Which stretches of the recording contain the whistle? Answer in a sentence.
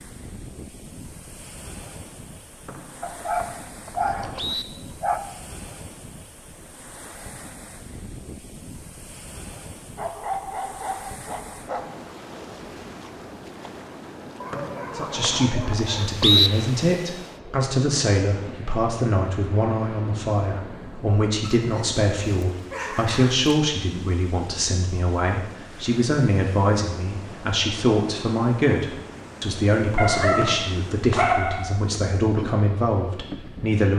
You can hear the whistle from 2.6 to 4.7 s, from 14.5 to 16.5 s and from 30.4 to 31.2 s.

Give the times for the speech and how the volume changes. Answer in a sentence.
The speech can be heard from 14.9 to 33.9 s, at a steady volume.